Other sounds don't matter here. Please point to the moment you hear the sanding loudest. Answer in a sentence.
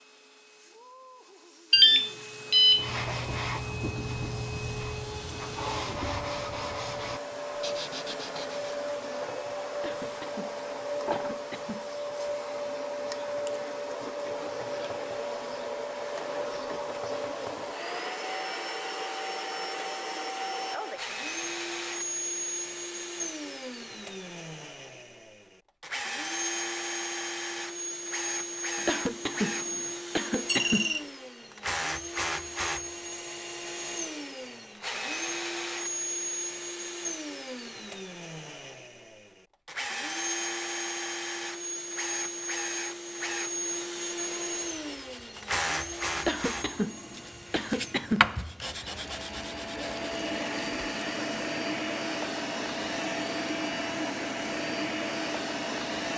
The loudest moment of the sanding is at 48 seconds.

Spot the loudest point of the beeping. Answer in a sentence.
The loudest moment of the beeping is at 2 seconds.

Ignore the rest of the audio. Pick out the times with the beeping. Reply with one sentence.
The beeping can be heard from 1.7 to 2.9 s and from 30.4 to 31.1 s.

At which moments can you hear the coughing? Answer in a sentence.
You can hear the coughing from 9.7 to 11.9 s, from 28.8 to 30.9 s and from 46.1 to 48.4 s.